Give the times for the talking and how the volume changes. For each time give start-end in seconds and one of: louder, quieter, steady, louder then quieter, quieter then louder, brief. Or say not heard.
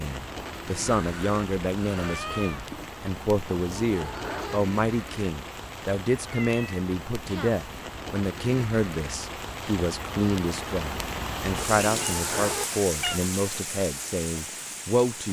0.0-15.2 steady.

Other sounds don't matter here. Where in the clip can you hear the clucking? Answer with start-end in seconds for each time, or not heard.
3.5-4.6, 11.6-12.7.